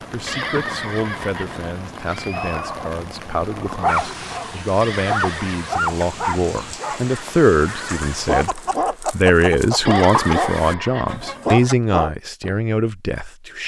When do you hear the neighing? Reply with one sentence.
You can hear the neighing from 0.2 to 2.7 s, from 4.8 to 5.8 s and from 9.8 to 11.6 s.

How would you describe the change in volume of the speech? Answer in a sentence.
The loudness of the speech goes up.